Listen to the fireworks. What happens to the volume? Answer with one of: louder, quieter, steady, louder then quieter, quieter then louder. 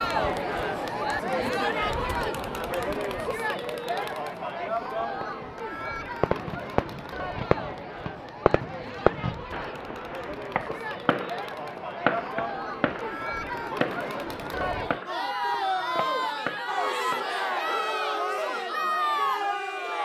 quieter.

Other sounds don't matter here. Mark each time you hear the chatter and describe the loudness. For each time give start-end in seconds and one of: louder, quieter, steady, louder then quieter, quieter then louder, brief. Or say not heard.
0.0-20.0 quieter then louder.